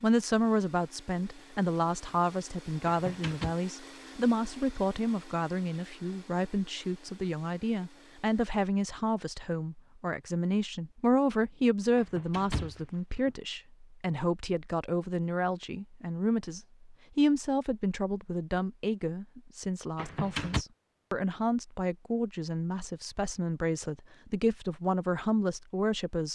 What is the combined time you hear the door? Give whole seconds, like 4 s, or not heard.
3 s.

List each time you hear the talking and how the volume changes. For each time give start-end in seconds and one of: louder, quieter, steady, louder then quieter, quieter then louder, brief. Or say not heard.
0.0-26.2 steady.